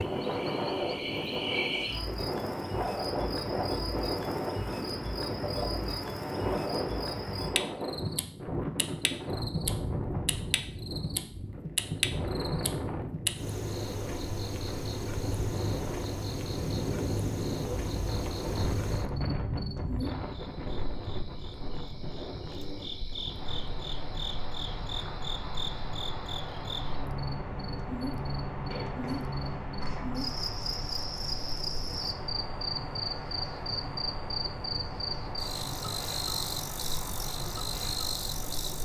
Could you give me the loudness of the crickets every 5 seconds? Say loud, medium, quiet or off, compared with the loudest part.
loud, loud, loud, loud, medium, loud, loud, loud.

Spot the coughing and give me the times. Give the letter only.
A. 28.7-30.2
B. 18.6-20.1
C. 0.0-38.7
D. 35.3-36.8
A.